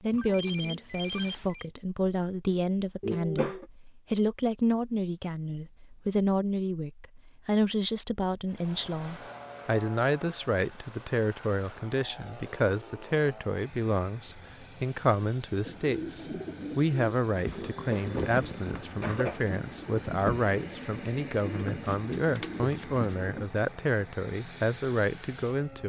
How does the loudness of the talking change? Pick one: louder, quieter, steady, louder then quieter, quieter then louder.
steady.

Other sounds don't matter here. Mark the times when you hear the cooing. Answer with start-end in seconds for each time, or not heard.
15.7-23.4.